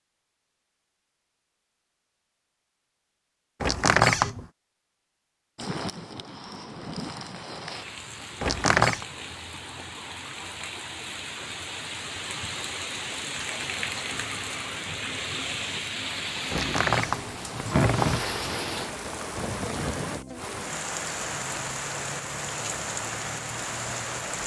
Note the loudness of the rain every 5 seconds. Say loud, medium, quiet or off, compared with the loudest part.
off, medium, loud, loud, loud.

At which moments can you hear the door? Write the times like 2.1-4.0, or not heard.
3.6-4.5, 8.4-9.1, 16.5-18.4.